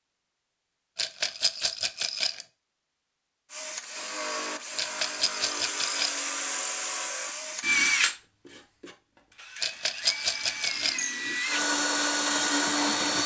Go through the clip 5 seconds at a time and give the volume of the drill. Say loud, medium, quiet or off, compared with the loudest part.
medium, loud, loud.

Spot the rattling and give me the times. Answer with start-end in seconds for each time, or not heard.
0.9-2.5, 4.8-6.2, 9.6-11.1.